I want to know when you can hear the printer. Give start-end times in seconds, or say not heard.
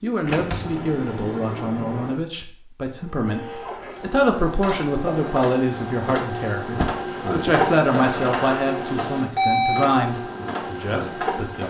3.0-11.6.